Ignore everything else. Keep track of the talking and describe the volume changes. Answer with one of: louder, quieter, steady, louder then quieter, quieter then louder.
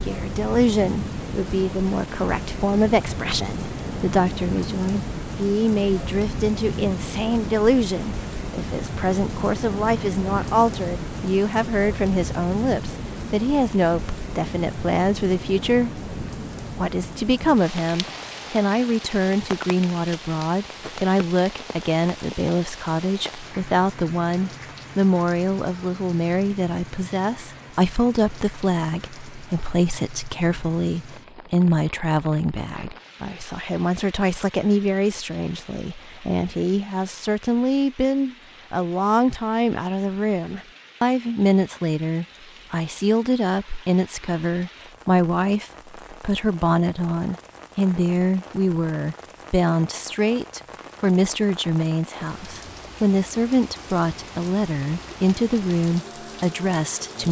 steady.